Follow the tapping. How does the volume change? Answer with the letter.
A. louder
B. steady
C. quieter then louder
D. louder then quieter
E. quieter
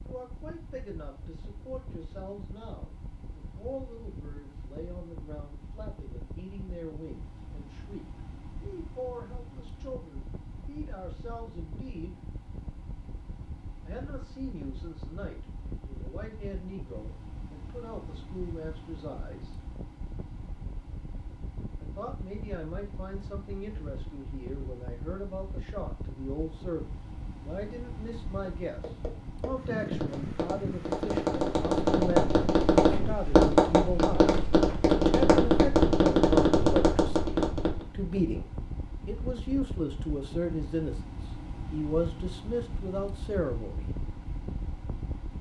A.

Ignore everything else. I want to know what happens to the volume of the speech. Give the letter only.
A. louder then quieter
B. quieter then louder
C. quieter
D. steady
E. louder
E.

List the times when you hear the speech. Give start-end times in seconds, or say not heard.
0.0-12.2, 13.8-19.6, 21.8-28.8, 29.4-34.3, 34.9-43.9.